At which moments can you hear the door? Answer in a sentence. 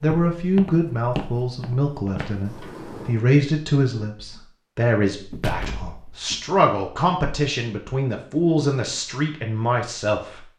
The door can be heard from 2.1 to 3.2 s and from 5.3 to 6.5 s.